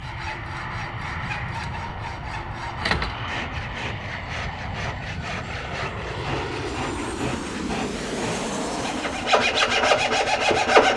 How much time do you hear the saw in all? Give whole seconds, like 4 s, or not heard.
11 s.